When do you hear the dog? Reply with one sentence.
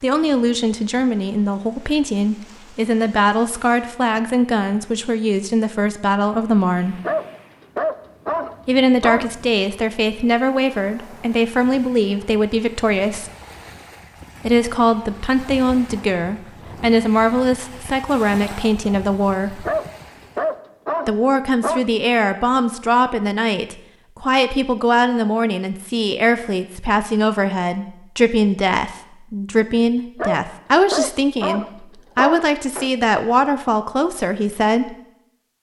You can hear the dog from 7.0 to 9.3 s, from 19.6 to 21.9 s and from 30.1 to 32.9 s.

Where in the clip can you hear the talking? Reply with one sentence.
You can hear the talking from 0.0 to 7.0 s, from 8.7 to 13.3 s, from 14.4 to 19.6 s and from 21.1 to 35.0 s.